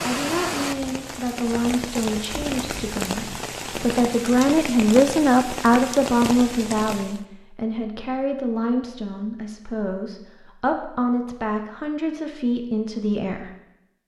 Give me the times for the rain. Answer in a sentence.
You can hear the rain from 0.0 to 7.2 s.